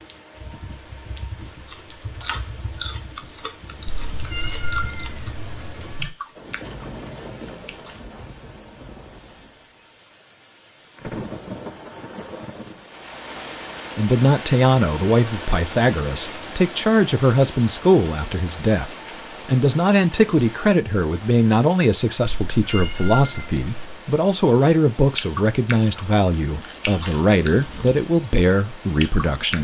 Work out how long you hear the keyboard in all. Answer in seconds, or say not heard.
6 s.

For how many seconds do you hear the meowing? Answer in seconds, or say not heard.
4 s.